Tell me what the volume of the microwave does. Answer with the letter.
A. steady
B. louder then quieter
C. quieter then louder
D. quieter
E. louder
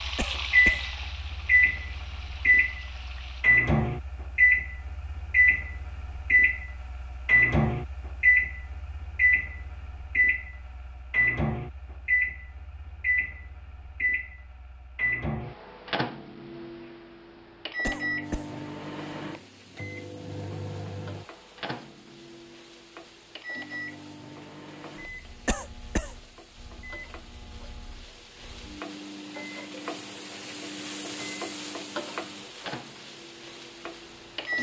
D.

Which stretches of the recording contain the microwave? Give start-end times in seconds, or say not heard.
0.0-34.5.